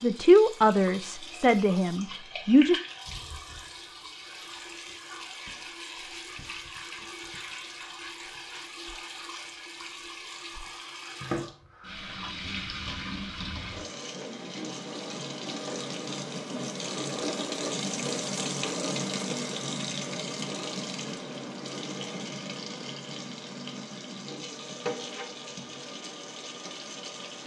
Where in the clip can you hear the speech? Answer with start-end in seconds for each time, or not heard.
0.0-2.8.